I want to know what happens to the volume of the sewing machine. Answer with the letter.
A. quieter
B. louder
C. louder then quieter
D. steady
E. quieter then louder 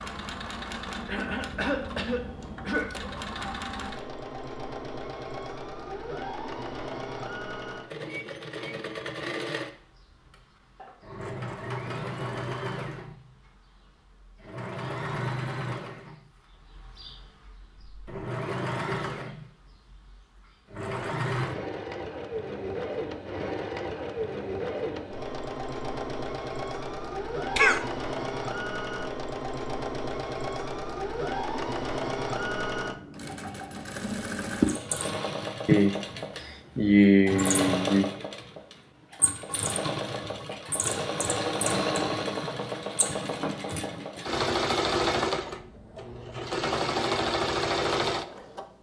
B.